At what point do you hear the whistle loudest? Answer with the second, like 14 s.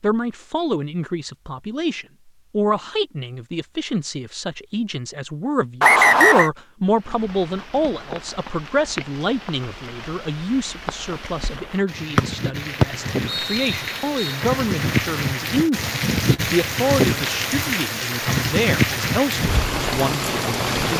6 s.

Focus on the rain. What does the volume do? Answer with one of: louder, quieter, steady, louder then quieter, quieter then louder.
louder.